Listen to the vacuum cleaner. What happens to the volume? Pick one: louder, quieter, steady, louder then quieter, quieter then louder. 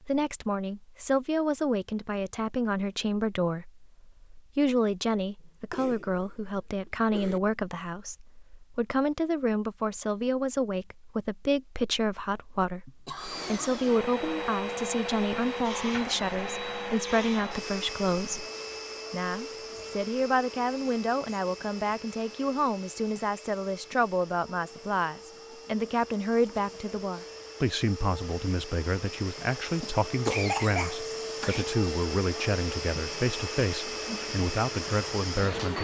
quieter then louder.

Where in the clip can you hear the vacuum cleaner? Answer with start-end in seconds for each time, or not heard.
13.2-35.7.